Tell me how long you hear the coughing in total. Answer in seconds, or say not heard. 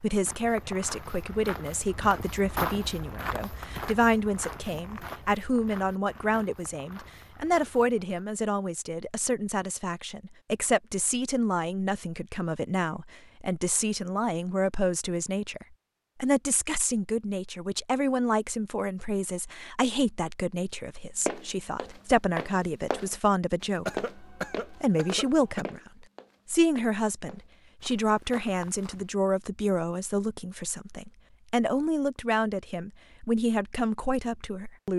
2 s.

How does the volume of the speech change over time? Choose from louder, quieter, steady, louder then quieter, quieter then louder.
steady.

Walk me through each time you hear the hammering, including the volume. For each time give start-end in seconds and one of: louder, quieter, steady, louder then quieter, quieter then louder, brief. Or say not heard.
not heard.